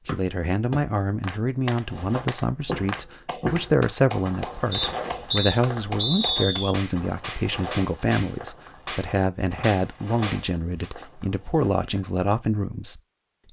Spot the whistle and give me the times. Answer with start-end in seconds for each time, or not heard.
0.1-0.8, 4.7-6.7, 9.6-10.2.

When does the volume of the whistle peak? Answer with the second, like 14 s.
6 s.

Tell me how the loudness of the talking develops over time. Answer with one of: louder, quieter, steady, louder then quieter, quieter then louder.
steady.